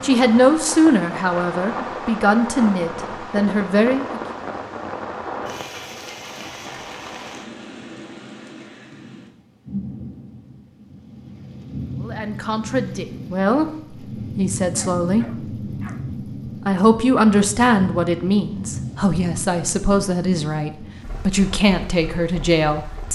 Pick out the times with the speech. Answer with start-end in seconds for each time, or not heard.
0.0-4.2, 12.1-15.2, 16.6-23.0.